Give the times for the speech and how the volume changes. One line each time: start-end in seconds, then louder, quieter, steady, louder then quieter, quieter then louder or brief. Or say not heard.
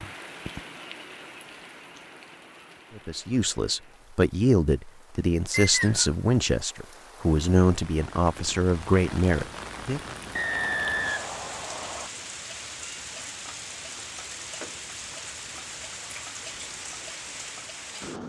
3.0-10.2 steady.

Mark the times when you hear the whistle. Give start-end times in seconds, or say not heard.
5.5-6.2, 10.3-12.1.